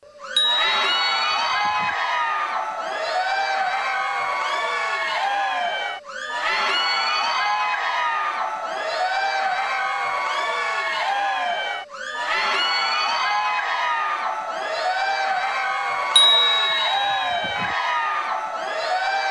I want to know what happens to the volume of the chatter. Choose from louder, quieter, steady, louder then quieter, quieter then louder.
steady.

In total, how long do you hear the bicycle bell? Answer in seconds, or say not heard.
3 s.